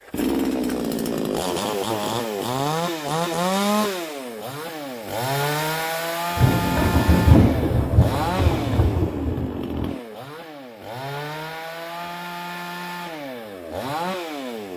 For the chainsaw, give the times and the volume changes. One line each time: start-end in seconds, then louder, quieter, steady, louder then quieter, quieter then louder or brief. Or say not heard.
0.1-14.7 quieter.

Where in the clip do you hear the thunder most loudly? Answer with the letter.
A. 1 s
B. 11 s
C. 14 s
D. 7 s
D.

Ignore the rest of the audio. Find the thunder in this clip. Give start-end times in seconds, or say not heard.
6.3-9.9.